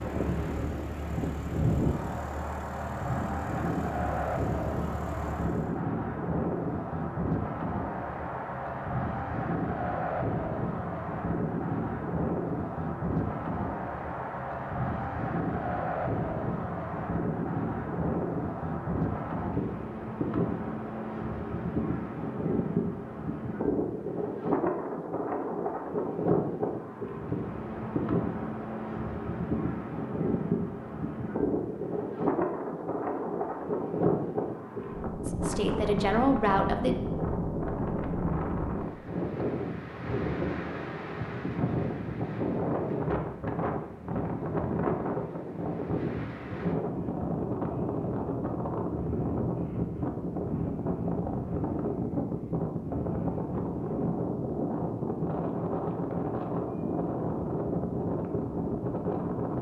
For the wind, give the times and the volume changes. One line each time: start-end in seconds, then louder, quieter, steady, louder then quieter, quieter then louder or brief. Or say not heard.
0.0-59.5 steady.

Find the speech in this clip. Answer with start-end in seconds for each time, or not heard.
35.2-37.0.